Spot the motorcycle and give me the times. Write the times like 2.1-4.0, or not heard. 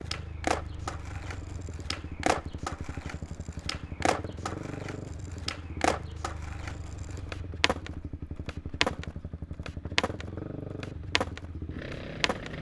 0.0-12.5.